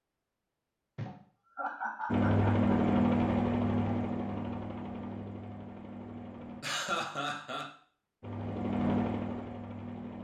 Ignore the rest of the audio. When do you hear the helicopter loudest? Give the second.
3 s.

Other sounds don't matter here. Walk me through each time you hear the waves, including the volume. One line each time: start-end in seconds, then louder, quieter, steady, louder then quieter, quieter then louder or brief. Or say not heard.
not heard.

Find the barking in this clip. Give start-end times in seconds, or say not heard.
not heard.